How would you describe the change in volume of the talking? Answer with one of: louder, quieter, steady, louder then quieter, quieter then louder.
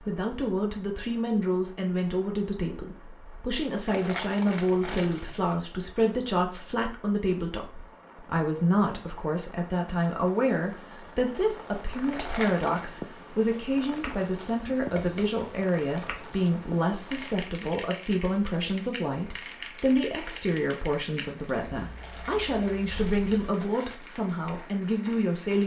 steady.